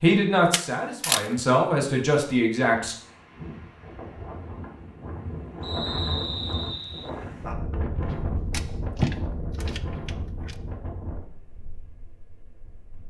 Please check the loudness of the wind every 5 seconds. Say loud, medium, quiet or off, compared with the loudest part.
medium, loud, medium.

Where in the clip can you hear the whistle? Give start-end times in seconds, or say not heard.
5.6-7.1.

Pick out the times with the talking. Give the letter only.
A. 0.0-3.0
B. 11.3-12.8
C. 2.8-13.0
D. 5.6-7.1
A.